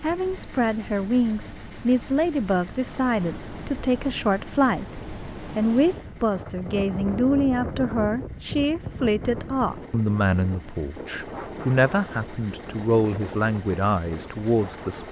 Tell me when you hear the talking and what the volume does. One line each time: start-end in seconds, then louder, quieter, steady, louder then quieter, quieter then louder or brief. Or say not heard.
0.0-15.0 steady.